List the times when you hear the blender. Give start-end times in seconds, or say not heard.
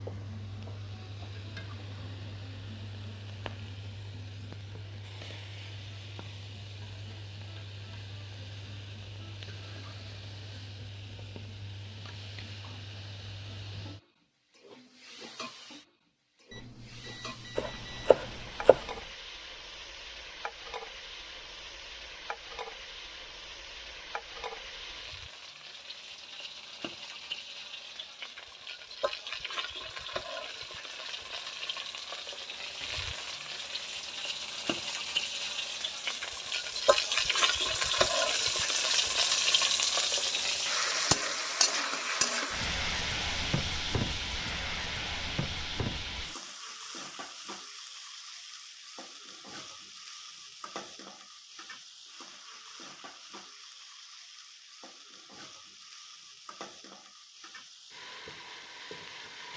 not heard.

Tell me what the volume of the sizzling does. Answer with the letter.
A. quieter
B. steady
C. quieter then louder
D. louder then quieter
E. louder
D.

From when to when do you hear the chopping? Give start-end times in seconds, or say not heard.
17.6-18.9.